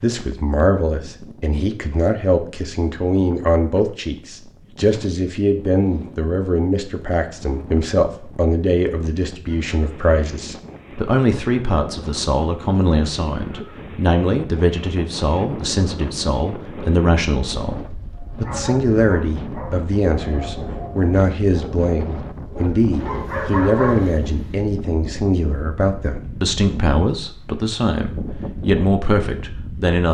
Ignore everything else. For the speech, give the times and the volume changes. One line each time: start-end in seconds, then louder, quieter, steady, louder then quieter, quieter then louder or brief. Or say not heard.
0.0-30.0 steady.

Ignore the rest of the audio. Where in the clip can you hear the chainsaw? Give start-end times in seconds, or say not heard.
not heard.